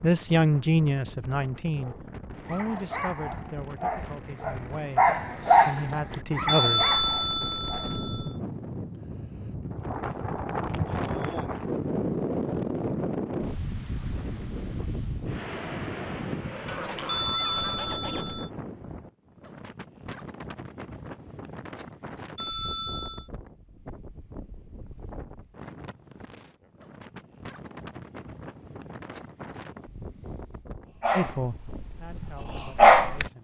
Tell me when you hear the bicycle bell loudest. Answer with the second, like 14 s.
7 s.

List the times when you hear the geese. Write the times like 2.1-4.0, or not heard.
16.6-18.4.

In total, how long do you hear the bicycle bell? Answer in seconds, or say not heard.
4 s.